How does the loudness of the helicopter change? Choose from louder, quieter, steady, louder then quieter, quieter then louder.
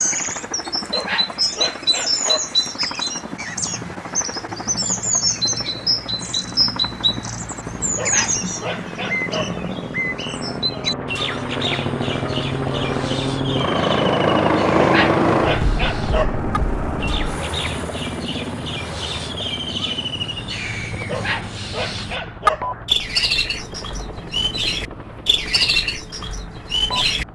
louder then quieter.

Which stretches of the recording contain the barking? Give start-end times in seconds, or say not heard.
0.9-2.5, 8.0-9.6, 14.8-16.4, 21.1-22.8.